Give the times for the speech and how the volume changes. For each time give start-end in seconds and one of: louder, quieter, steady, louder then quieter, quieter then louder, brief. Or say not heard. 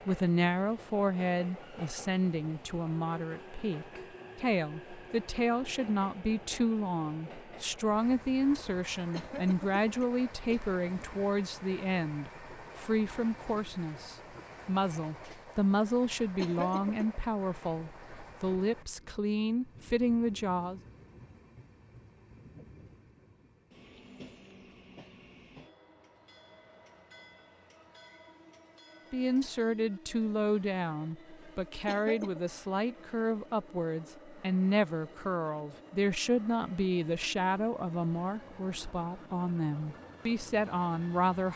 0.1-20.8 steady
29.1-41.5 steady.